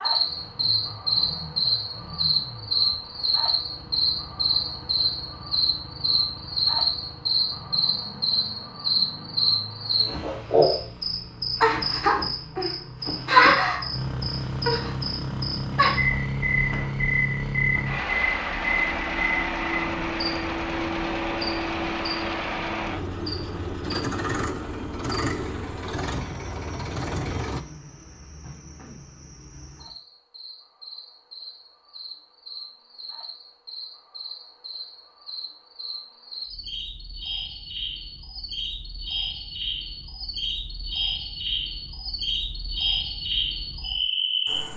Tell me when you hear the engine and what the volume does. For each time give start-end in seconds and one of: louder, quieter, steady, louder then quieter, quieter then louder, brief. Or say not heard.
0.0-27.6 louder.